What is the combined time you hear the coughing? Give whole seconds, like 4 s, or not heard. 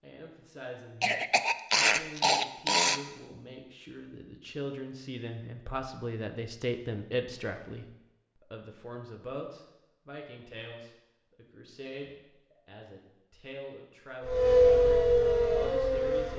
2 s.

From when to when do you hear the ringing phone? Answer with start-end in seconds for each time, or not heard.
not heard.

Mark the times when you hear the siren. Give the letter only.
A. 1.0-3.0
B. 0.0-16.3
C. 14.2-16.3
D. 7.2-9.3
C.